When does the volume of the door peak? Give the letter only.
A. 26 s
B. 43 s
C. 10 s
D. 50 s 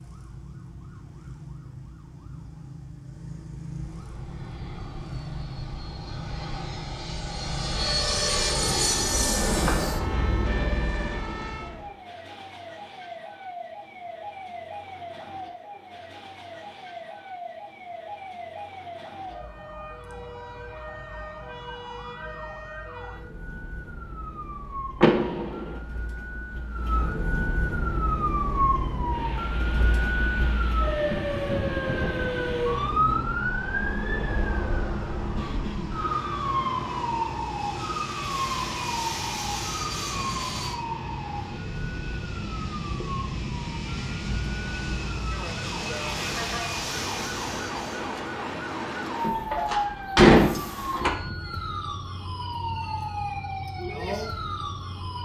D.